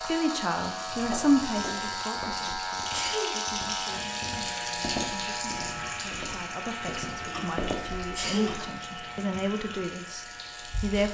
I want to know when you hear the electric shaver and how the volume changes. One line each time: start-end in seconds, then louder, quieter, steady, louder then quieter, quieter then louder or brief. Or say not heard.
0.0-11.0 quieter.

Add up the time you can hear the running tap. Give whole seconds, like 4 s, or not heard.
11 s.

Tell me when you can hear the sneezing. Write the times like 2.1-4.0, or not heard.
2.9-3.4, 8.2-9.2.